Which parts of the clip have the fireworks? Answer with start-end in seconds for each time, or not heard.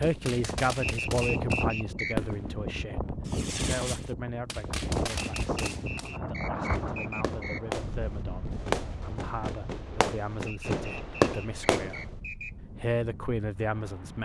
0.0-12.1.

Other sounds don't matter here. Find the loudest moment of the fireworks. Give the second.
11 s.